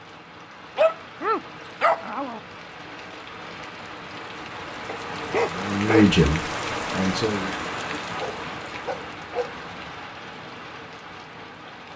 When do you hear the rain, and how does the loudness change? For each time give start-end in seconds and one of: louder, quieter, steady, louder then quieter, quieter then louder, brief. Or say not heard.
0.0-11.9 louder then quieter.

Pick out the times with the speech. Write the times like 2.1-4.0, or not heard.
5.5-7.5.